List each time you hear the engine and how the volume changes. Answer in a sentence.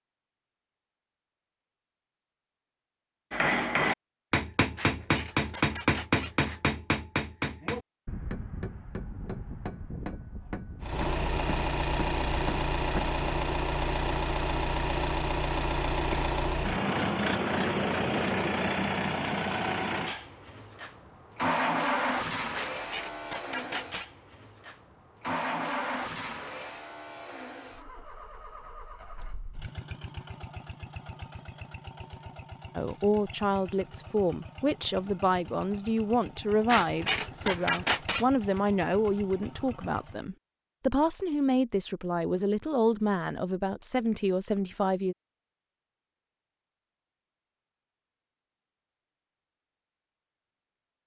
You can hear the engine from 10.8 to 40.2 s, getting quieter.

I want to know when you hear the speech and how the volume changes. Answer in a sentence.
The speech can be heard from 32.8 to 45.1 s, at a steady volume.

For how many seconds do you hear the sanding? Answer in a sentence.
You can hear the sanding for 5 seconds altogether.